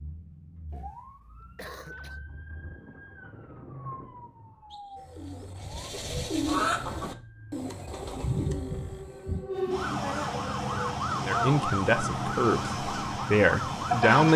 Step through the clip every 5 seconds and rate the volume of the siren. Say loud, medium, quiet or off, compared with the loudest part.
quiet, medium, loud.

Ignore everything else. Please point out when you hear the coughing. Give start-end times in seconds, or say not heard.
0.7-2.2.